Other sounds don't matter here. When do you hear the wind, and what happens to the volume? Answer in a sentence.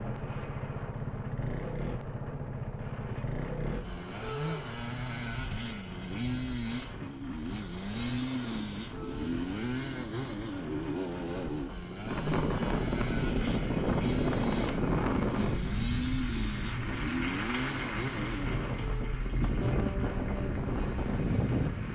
The wind can be heard from 0.0 to 21.9 s, getting louder.